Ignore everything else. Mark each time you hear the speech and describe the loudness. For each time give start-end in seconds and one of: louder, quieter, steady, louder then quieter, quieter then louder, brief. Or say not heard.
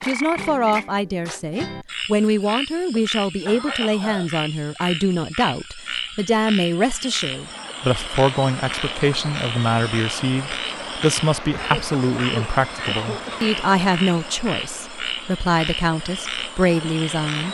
0.0-17.4 steady.